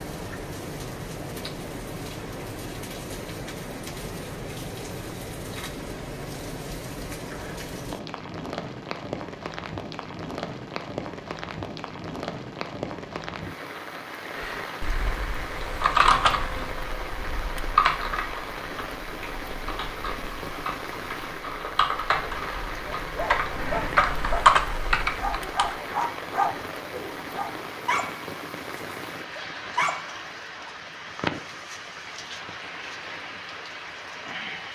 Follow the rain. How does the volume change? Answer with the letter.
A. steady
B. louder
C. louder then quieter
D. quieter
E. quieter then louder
A.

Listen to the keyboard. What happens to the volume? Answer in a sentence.
The volume of the keyboard goes down, then up.